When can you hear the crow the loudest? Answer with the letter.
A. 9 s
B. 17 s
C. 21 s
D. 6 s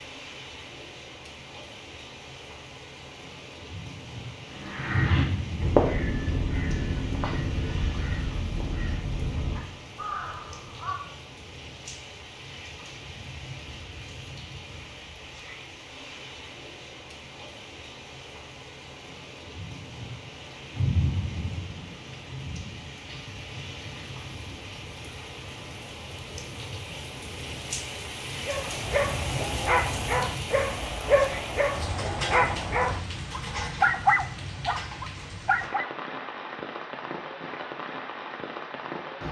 D.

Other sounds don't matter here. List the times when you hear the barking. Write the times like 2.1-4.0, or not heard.
28.4-35.9.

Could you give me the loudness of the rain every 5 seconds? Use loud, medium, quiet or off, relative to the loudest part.
medium, loud, medium, medium, loud, loud, loud, loud.